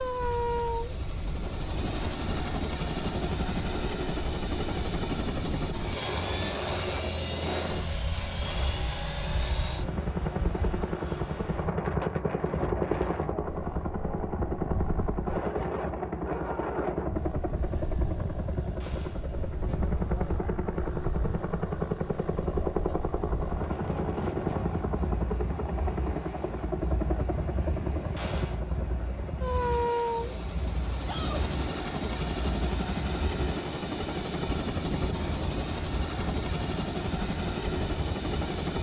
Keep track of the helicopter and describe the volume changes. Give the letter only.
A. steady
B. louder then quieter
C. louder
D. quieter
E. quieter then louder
A.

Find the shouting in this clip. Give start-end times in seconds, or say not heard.
16.2-16.9, 31.0-31.4.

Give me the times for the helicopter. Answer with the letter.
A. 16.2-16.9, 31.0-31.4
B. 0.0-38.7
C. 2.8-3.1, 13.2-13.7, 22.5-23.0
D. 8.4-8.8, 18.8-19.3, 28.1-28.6
B.